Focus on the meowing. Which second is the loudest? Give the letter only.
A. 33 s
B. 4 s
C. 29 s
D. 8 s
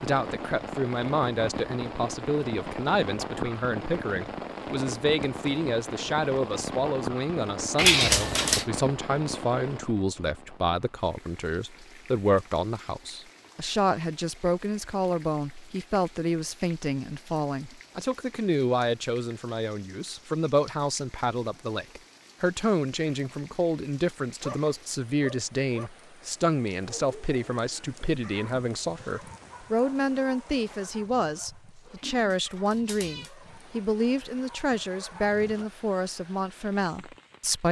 D.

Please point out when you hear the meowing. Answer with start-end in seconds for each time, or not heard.
7.8-8.7, 32.1-33.3.